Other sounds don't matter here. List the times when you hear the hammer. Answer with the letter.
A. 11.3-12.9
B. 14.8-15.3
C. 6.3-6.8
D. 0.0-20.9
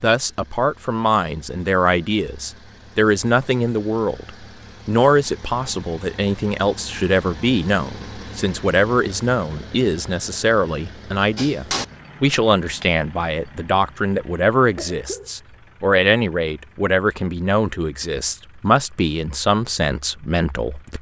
A.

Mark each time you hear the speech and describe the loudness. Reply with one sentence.
You can hear the speech from 0.0 to 20.9 s, at a steady volume.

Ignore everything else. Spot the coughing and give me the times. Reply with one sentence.
The coughing can be heard from 14.8 to 15.3 s.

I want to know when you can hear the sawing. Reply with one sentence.
You can't hear the sawing here.